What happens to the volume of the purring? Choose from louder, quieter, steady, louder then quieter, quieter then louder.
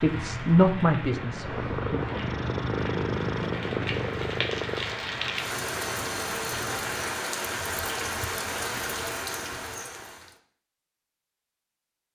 quieter.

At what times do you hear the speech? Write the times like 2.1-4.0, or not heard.
0.0-2.0.